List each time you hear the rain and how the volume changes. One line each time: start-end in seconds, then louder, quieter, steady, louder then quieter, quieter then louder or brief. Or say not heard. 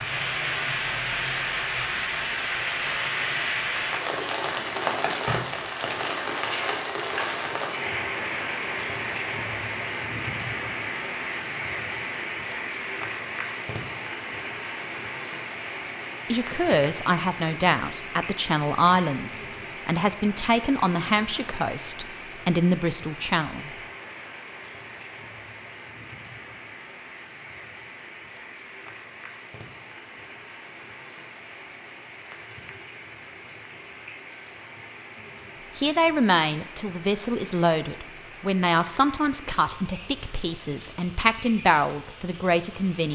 0.0-43.1 quieter.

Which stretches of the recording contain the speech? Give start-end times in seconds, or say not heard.
16.3-23.7, 35.8-43.1.